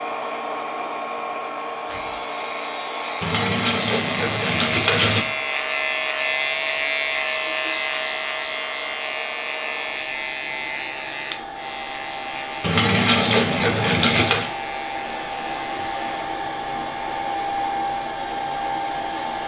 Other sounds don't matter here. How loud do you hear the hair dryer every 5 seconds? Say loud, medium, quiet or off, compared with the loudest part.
loud, medium, medium, loud.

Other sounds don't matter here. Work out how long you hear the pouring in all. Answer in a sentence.
The pouring can be heard for 4 seconds in total.